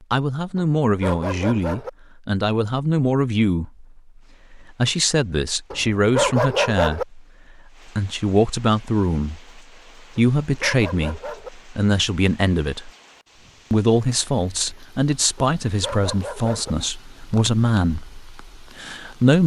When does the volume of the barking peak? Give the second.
6 s.